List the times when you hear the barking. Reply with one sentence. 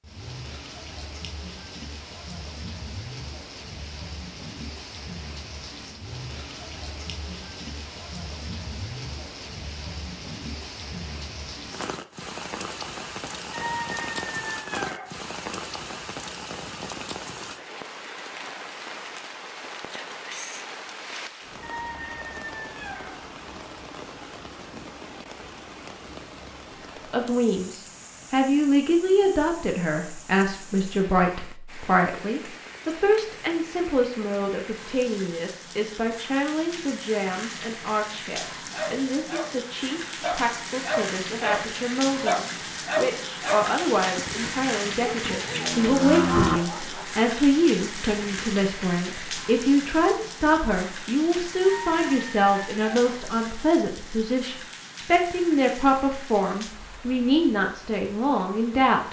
The barking can be heard from 38.7 to 39.5 s and from 40.2 to 47.1 s.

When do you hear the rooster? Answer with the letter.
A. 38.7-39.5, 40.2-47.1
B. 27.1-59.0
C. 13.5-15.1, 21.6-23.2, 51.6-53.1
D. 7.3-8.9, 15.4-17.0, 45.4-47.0
C.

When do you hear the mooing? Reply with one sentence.
The mooing can be heard from 45.2 to 46.6 s.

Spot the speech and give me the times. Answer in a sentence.
The speech can be heard from 27.1 to 59.0 s.